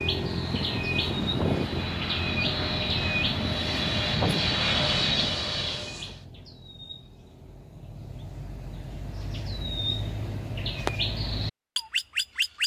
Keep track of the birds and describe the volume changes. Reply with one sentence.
The loudness of the birds goes down, then up.